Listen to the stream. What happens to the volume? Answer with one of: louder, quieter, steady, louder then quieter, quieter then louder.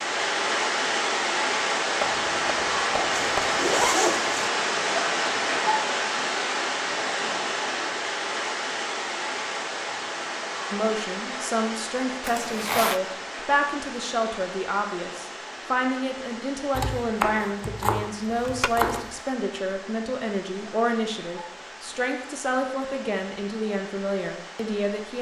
quieter.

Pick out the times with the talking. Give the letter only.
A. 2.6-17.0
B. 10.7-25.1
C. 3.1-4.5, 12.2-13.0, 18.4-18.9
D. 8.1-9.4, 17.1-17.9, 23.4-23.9
B.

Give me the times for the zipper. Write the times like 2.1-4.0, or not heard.
3.1-4.5, 12.2-13.0, 18.4-18.9.